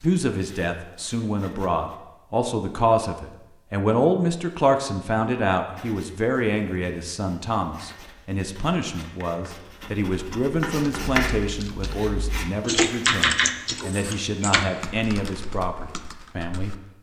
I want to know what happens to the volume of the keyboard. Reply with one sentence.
The loudness of the keyboard goes up, then down.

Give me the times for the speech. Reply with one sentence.
You can hear the speech from 0.0 to 16.8 s.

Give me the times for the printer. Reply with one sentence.
The printer can't be heard in this clip.